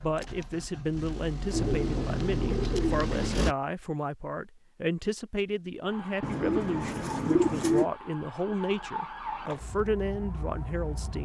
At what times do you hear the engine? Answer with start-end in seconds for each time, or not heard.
0.0-3.5.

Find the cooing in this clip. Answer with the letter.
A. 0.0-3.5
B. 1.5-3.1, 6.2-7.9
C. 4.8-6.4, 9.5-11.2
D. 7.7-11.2
B.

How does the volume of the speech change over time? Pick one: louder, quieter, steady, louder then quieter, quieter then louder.
steady.